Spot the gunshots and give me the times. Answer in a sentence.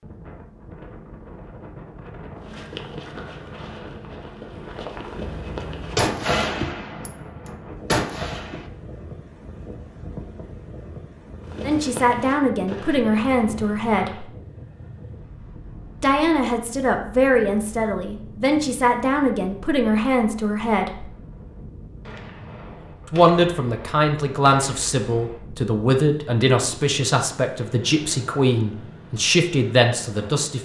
You can hear the gunshots from 5.2 to 8.7 s and from 22.1 to 25.4 s.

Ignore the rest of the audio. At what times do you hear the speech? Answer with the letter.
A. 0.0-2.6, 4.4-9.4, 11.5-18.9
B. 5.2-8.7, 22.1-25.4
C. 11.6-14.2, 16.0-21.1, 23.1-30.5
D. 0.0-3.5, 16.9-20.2
C.